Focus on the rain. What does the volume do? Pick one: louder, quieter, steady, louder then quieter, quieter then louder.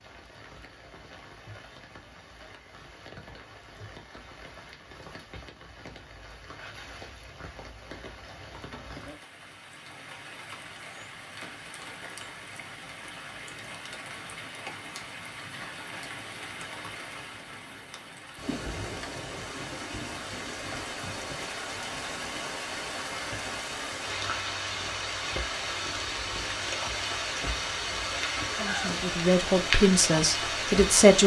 louder.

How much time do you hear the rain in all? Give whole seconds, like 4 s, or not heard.
31 s.